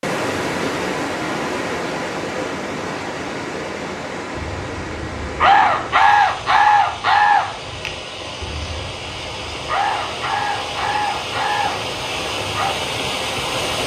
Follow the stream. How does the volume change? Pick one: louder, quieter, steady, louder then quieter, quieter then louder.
quieter then louder.